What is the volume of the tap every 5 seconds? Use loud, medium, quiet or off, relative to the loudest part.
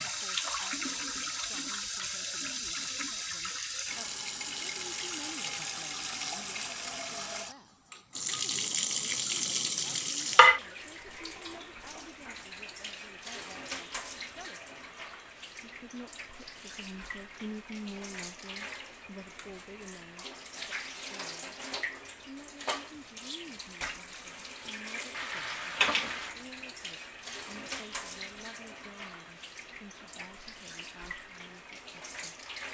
loud, loud, loud, quiet, medium, medium, quiet.